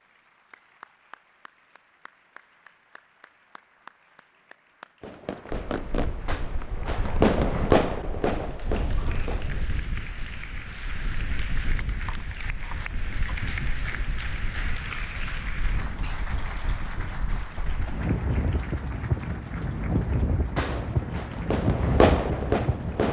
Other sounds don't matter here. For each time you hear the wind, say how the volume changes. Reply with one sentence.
The wind can be heard from 5.5 to 23.0 s, getting louder.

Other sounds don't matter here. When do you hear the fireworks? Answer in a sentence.
The fireworks can be heard from 5.0 to 9.7 s and from 20.6 to 23.0 s.